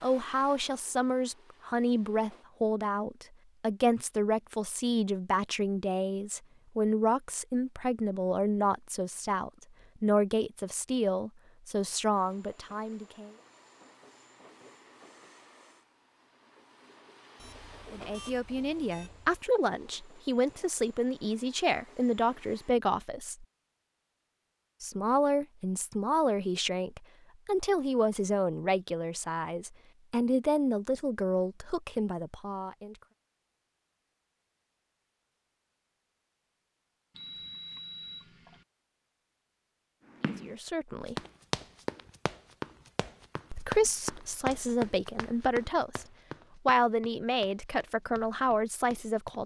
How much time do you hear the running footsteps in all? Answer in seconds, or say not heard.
9 s.